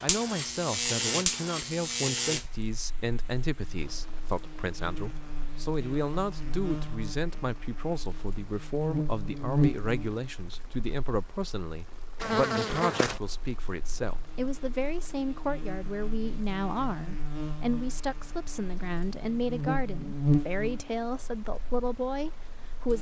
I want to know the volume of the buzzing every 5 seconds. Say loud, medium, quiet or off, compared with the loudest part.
loud, loud, loud, medium, loud.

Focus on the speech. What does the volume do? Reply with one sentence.
The loudness of the speech stays about the same.